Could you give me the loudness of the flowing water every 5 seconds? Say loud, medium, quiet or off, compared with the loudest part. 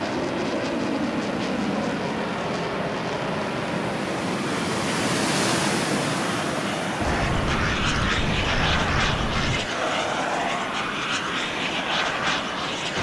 loud, loud, medium.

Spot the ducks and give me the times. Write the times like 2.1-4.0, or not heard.
7.0-9.7.